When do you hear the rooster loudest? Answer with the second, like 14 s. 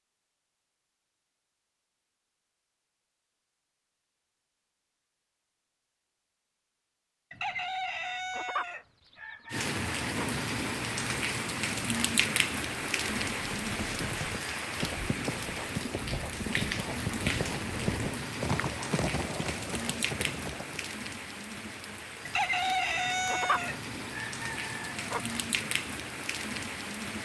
23 s.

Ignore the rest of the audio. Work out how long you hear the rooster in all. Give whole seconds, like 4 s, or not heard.
6 s.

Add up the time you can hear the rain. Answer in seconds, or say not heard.
18 s.